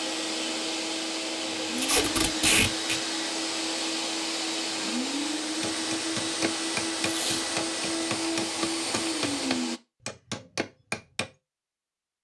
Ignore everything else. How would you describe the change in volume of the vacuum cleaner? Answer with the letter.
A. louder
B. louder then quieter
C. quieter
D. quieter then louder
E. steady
E.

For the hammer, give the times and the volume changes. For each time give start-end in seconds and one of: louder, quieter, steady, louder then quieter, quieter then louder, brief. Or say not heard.
5.6-11.3 steady.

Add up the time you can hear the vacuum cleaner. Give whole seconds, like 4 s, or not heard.
10 s.